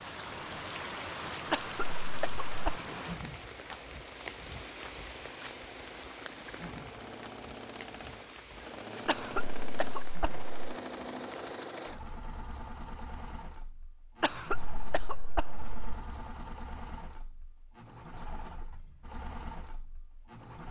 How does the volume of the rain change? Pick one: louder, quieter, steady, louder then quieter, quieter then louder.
quieter.